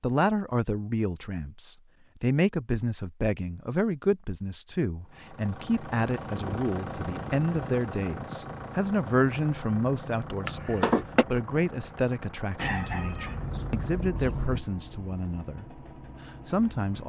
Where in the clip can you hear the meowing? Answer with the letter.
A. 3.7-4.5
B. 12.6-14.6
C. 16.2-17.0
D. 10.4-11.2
D.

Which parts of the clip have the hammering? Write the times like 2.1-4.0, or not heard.
not heard.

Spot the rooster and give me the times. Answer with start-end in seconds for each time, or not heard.
12.6-14.6.